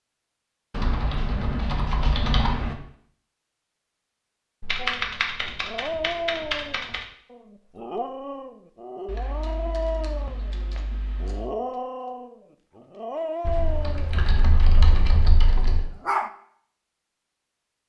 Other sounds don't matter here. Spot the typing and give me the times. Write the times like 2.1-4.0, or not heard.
0.8-2.8, 4.6-7.0, 9.1-11.4, 13.4-15.9.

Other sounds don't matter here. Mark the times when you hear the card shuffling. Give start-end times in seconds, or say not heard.
not heard.